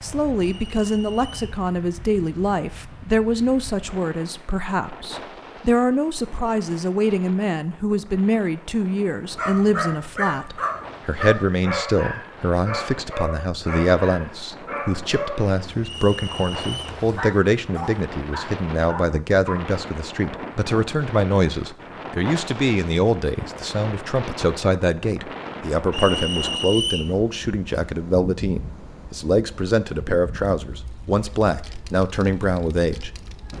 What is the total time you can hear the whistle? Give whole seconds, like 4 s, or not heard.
3 s.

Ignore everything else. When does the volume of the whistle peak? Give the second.
27 s.